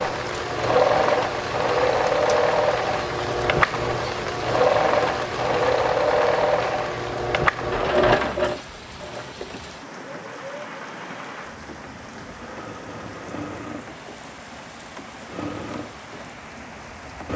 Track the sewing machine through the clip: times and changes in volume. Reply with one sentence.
You can hear the sewing machine from 0.0 to 17.3 s, getting quieter.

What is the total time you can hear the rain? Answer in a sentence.
You can hear the rain for 17 seconds altogether.